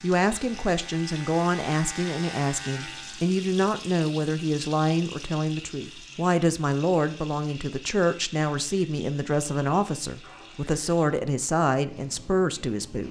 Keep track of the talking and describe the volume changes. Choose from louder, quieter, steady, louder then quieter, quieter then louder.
steady.